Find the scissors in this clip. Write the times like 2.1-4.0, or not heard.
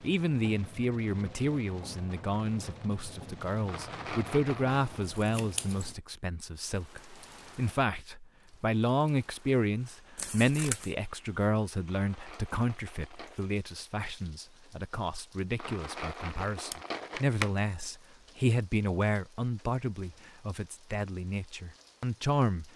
4.7-6.0, 10.2-10.9, 16.7-17.5.